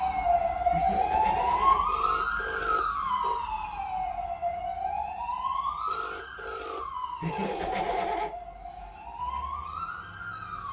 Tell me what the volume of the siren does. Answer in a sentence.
The volume of the siren goes down.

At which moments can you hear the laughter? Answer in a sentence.
The laughter can be heard from 0.7 to 1.8 s and from 7.2 to 8.3 s.